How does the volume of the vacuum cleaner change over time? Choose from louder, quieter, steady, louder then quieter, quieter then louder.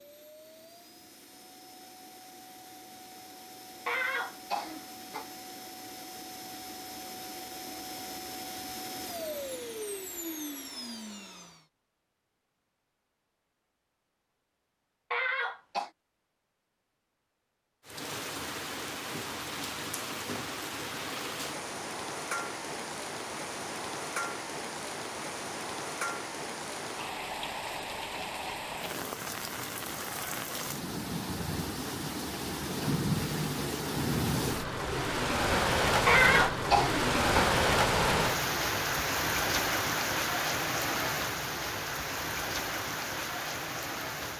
louder.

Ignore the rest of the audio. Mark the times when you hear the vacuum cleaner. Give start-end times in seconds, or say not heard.
0.0-11.6.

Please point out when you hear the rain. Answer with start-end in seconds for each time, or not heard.
17.9-44.3.